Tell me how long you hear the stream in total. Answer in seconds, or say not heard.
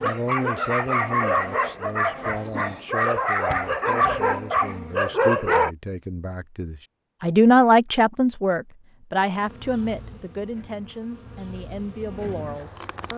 not heard.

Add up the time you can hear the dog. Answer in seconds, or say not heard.
6 s.